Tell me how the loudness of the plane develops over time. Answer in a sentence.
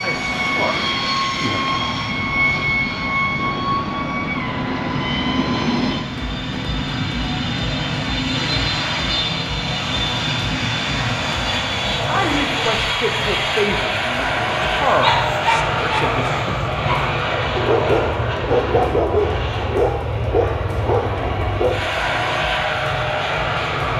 The loudness of the plane stays about the same.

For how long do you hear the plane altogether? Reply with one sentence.
You can hear the plane for 24 seconds altogether.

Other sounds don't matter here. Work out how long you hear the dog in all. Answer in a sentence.
The dog can be heard for 7 seconds in total.